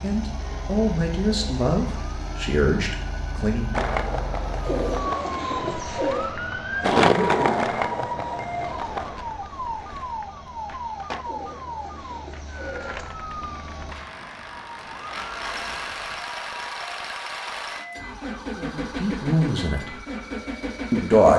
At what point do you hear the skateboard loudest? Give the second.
7 s.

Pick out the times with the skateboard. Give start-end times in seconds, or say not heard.
3.7-14.3.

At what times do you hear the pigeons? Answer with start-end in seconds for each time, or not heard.
4.6-6.3, 11.2-13.1.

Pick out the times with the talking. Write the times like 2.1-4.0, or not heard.
0.0-3.8, 18.6-19.9, 20.9-21.3.